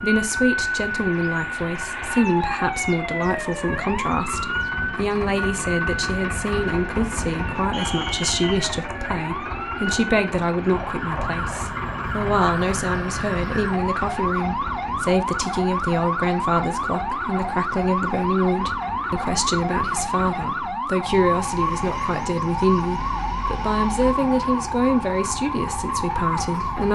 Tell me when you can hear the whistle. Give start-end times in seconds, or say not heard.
7.7-8.7.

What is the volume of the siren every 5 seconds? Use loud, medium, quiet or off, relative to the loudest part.
loud, medium, loud, loud, loud, loud.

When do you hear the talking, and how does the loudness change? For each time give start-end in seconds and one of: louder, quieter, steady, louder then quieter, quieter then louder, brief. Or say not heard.
0.0-26.8 steady.